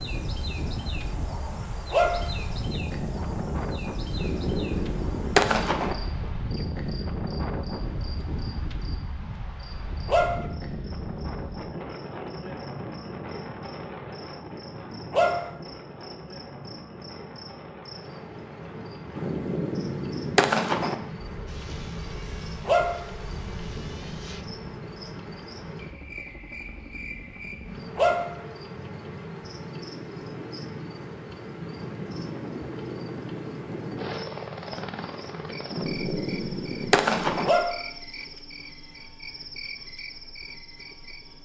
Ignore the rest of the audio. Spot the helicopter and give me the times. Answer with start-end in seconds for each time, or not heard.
21.4-41.3.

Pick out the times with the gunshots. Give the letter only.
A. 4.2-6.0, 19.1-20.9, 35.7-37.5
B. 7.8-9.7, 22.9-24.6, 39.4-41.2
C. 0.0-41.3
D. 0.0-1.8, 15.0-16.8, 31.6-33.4
A.